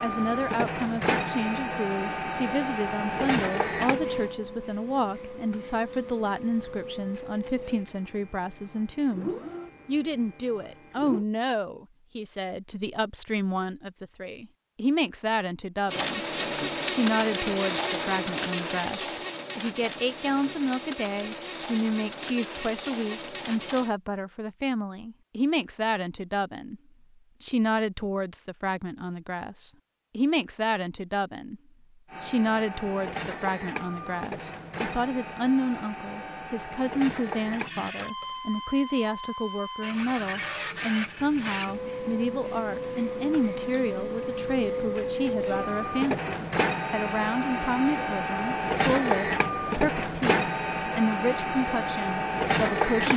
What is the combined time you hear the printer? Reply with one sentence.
You can hear the printer for 40 seconds altogether.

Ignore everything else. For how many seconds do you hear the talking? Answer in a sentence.
The talking can be heard for 51 seconds in total.